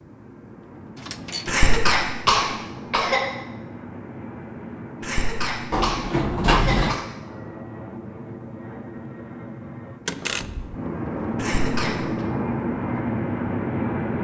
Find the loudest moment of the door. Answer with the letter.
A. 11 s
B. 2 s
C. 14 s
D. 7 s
D.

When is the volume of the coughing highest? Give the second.
2 s.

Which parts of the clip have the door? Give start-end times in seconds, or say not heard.
0.9-1.6, 5.7-7.0, 10.1-10.8.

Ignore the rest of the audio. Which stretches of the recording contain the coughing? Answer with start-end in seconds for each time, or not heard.
1.4-3.2, 5.0-7.0, 11.3-11.9.